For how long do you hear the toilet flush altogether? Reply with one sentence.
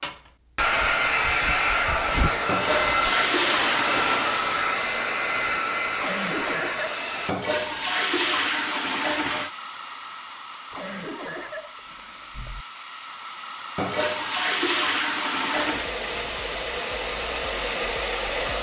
You can hear the toilet flush for 6 seconds altogether.